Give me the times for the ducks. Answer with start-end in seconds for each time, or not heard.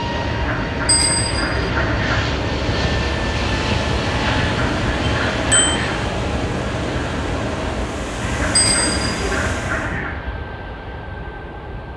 0.2-2.2, 4.0-6.0, 8.2-10.2.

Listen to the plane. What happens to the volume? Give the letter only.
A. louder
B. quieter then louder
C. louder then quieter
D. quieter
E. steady
D.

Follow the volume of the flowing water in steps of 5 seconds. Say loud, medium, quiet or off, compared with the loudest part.
loud, loud, off.